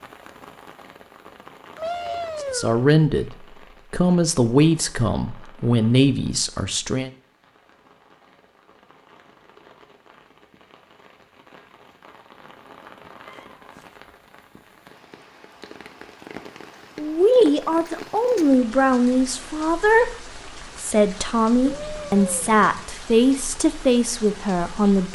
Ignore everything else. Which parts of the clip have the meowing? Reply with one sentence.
The meowing can be heard from 1.8 to 3.2 s, from 13.2 to 13.9 s and from 21.6 to 22.8 s.